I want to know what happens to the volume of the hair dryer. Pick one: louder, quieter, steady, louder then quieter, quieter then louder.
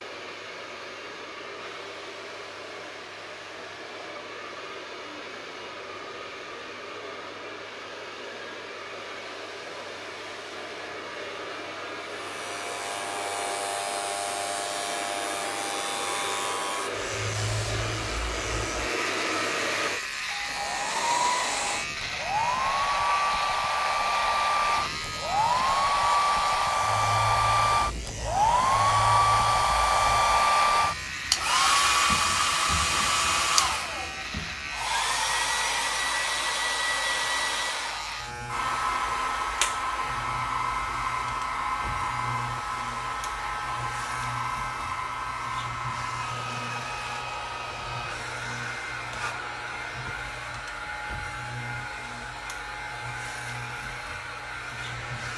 louder then quieter.